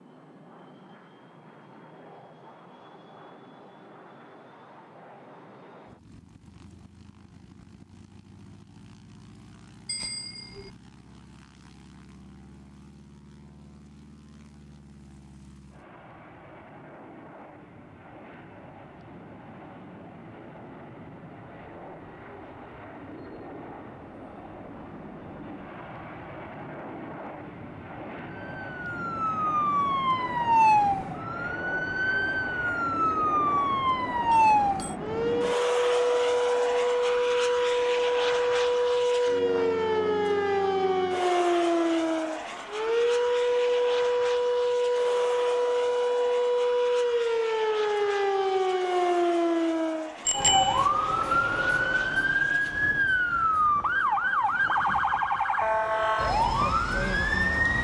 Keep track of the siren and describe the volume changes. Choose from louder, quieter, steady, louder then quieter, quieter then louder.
steady.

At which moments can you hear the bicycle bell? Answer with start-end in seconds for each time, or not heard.
9.8-10.7, 34.3-35.0, 50.2-50.8.